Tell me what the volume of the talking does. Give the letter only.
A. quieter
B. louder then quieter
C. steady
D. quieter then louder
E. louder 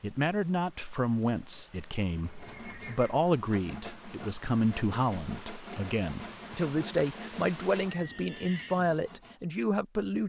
C.